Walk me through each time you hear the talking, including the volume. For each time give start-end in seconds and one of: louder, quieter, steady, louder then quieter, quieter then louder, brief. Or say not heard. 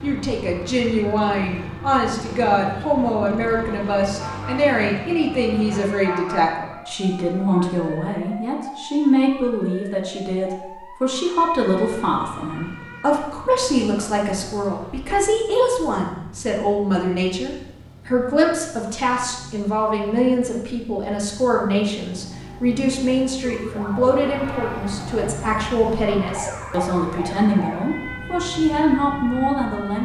0.0-30.0 steady.